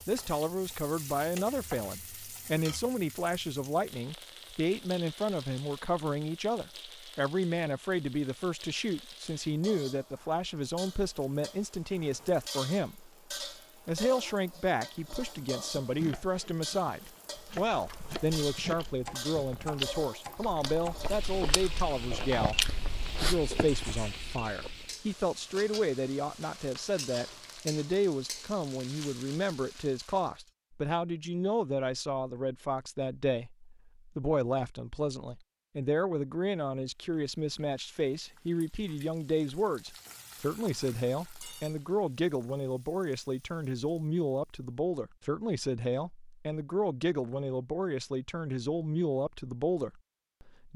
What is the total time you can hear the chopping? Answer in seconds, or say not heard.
6 s.